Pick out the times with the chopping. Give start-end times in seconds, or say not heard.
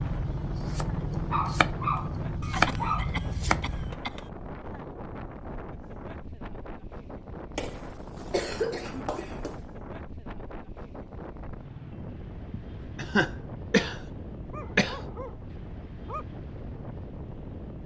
0.0-4.0.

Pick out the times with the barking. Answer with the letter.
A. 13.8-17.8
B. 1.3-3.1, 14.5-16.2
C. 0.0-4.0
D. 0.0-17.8
B.